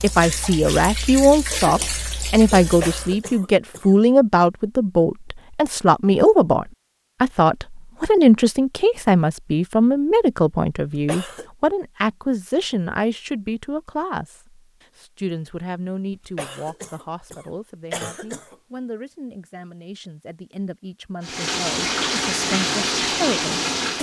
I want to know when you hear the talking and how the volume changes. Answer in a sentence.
The talking can be heard from 0.0 to 23.9 s, getting quieter.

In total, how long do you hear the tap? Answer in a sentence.
You can hear the tap for 6 seconds altogether.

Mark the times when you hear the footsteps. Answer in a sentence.
The footsteps can't be heard in this clip.